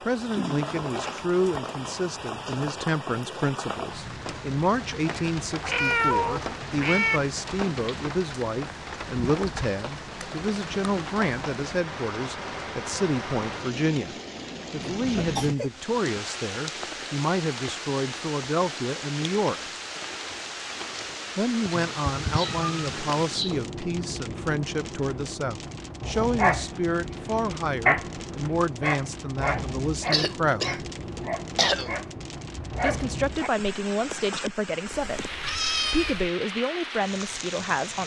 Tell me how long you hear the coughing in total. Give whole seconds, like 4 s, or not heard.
4 s.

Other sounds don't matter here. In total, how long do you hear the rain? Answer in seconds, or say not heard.
38 s.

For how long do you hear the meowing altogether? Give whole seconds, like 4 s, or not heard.
5 s.